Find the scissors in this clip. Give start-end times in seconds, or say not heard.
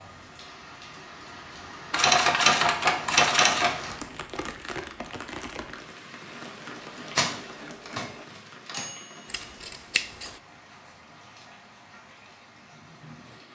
9.2-10.4.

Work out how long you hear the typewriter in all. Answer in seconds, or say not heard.
4 s.